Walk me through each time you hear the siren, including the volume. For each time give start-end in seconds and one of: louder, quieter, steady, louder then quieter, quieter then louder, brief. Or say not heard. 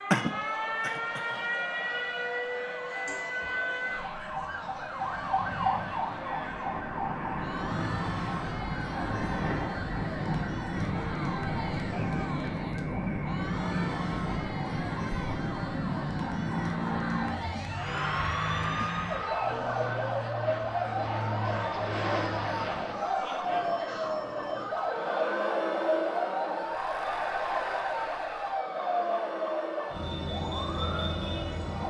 0.0-31.8 steady.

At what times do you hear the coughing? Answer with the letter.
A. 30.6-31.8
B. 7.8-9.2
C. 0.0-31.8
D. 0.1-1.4
D.